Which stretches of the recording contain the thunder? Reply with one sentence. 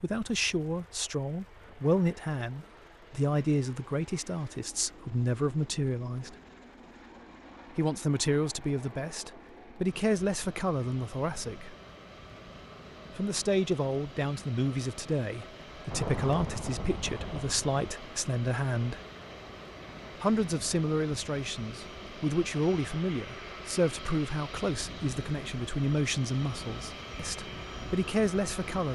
The thunder can be heard from 15.9 to 17.9 s.